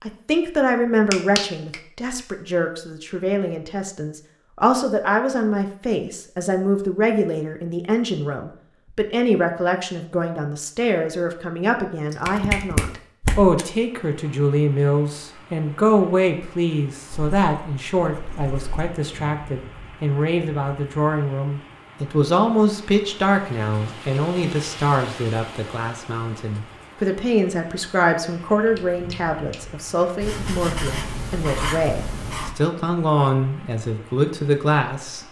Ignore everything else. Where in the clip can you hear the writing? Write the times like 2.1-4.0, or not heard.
17.1-18.9, 30.2-32.5.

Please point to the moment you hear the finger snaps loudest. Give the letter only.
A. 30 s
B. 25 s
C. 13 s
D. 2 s
C.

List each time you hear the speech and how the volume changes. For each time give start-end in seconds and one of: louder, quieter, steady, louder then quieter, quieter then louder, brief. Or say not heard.
0.0-35.2 steady.